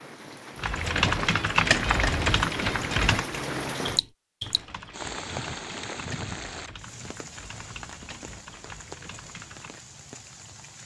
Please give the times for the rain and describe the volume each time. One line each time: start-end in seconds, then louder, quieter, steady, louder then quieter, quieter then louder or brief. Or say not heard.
0.0-10.8 louder then quieter.